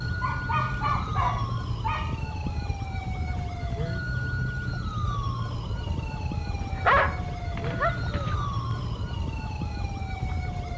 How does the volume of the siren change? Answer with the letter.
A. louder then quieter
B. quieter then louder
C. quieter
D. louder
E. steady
E.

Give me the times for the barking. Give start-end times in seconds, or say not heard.
0.2-2.2, 6.6-8.3.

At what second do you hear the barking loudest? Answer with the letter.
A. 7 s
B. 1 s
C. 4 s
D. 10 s
A.